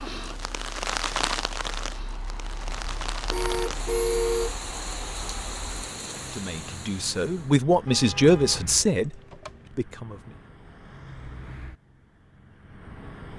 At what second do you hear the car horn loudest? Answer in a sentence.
The volume of the car horn peaks at 4 seconds.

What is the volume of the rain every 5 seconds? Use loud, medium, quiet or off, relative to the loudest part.
loud, medium, off.